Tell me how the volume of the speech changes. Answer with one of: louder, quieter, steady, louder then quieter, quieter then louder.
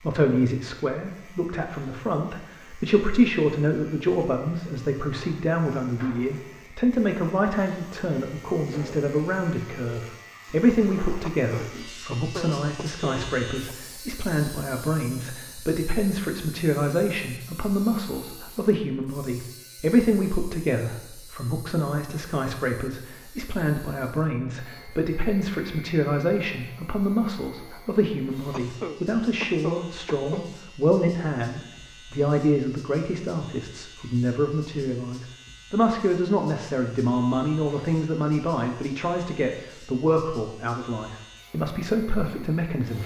steady.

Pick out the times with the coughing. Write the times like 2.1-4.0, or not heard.
11.2-13.8, 28.5-30.5.